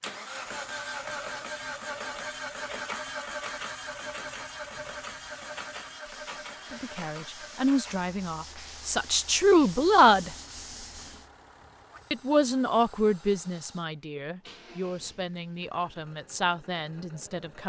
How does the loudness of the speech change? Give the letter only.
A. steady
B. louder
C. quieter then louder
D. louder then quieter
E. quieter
D.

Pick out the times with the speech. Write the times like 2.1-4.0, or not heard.
6.7-10.3, 12.1-17.6.